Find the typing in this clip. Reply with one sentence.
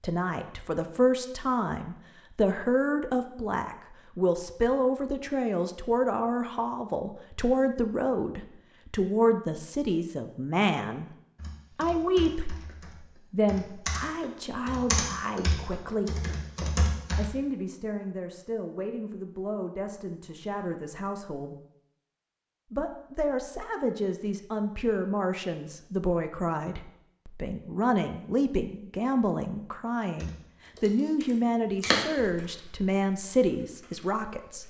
You can hear the typing from 11.3 to 17.2 s and from 30.2 to 34.6 s.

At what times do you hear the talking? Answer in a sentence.
You can hear the talking from 0.0 to 11.1 s, from 11.8 to 16.1 s, from 17.1 to 21.6 s and from 22.7 to 34.6 s.